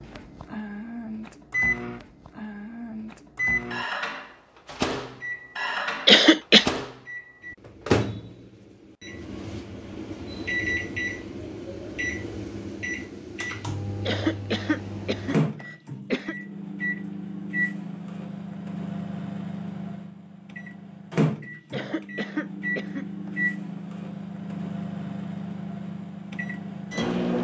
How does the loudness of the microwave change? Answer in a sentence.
The loudness of the microwave stays about the same.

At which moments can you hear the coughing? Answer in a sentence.
You can hear the coughing from 6.0 to 6.7 s, from 14.1 to 16.4 s and from 21.7 to 23.4 s.